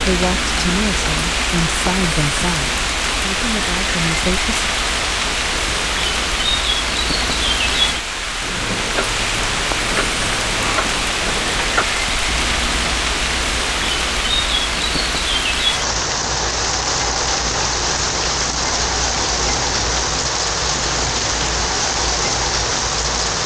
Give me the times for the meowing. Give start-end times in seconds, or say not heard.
not heard.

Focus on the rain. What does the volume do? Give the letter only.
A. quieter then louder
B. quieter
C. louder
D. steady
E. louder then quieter
D.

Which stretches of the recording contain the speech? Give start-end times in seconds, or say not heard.
0.0-4.5.